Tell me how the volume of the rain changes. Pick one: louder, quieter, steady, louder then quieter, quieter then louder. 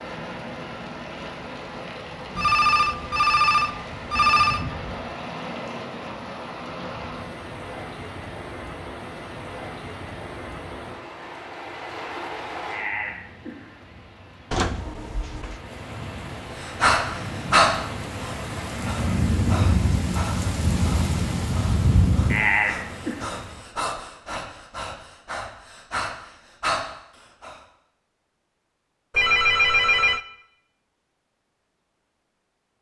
louder.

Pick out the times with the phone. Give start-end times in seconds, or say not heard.
2.4-4.7, 14.5-15.6, 29.1-30.2.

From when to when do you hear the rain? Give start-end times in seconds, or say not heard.
0.0-23.6.